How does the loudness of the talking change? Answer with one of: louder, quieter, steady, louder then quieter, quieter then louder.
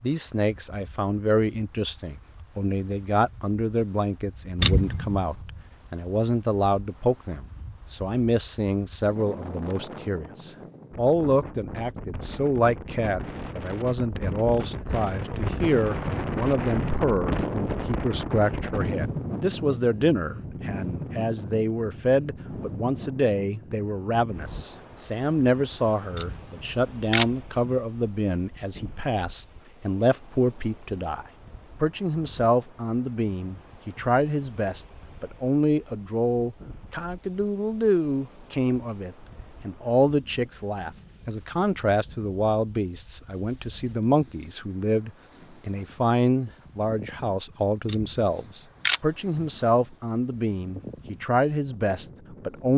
steady.